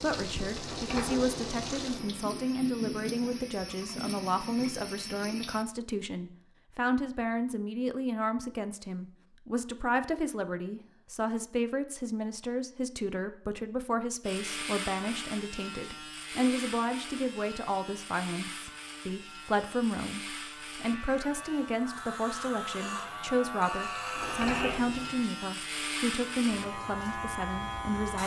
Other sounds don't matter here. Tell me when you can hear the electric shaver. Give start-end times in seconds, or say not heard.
14.2-28.2.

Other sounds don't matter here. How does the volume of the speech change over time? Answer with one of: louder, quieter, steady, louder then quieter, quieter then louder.
steady.